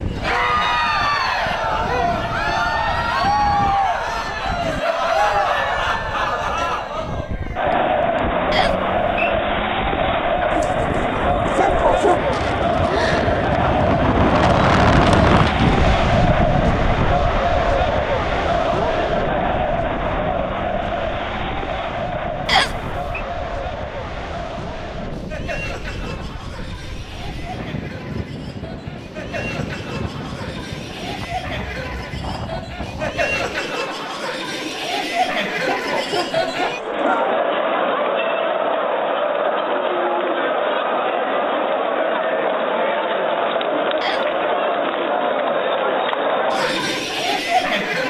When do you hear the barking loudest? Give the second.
12 s.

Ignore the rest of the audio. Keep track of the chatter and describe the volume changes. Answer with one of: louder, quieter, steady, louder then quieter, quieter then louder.
quieter then louder.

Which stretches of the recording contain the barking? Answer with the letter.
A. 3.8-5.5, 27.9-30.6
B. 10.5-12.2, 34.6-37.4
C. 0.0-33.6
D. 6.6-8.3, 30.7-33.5
B.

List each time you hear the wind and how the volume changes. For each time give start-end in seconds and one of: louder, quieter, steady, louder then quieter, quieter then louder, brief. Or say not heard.
0.0-33.6 louder then quieter.